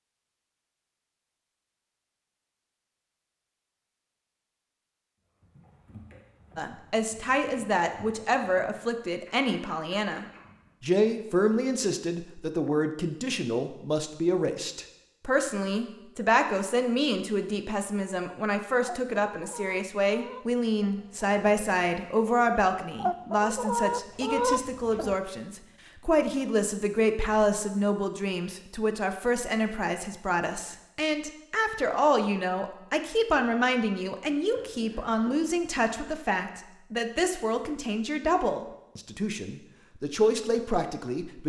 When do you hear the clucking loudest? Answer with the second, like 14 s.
24 s.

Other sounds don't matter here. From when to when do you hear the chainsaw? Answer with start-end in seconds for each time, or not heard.
not heard.